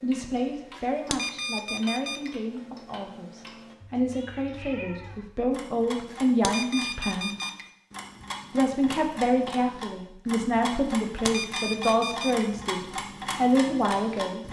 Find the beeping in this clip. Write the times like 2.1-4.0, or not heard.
0.8-2.3, 6.0-7.7, 11.1-12.4.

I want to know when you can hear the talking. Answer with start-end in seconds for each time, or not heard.
0.0-7.3, 8.5-14.4.